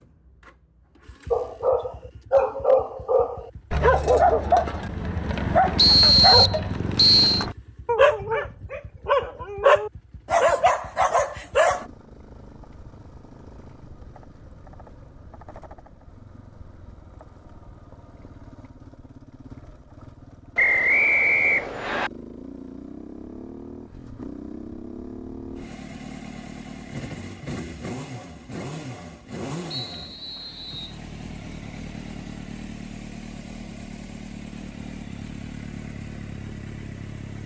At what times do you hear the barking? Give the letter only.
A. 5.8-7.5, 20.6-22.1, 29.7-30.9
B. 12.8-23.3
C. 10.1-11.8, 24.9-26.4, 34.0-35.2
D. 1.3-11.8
D.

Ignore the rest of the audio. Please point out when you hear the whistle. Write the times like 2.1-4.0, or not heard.
5.8-7.5, 20.6-22.1, 29.7-30.9.